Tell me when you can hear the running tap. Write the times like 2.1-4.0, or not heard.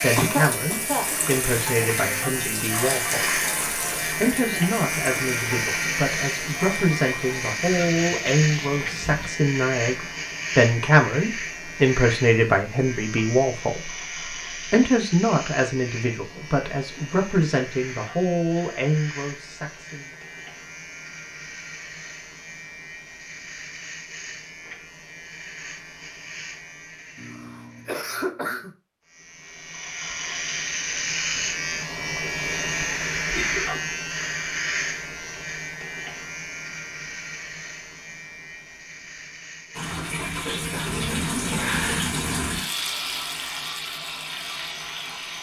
0.0-9.3, 39.7-45.3.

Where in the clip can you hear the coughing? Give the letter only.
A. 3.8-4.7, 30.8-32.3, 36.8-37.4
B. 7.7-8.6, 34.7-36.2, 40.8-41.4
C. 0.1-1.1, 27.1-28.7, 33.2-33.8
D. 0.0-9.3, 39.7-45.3
C.